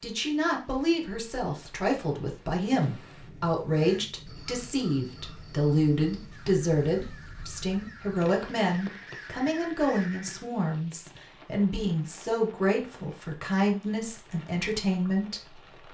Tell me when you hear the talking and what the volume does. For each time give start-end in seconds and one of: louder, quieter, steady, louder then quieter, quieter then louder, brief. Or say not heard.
0.0-15.6 steady.